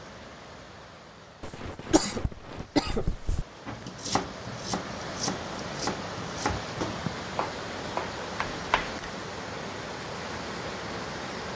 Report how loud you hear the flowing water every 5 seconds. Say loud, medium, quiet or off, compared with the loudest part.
medium, loud, loud.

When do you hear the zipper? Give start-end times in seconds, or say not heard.
not heard.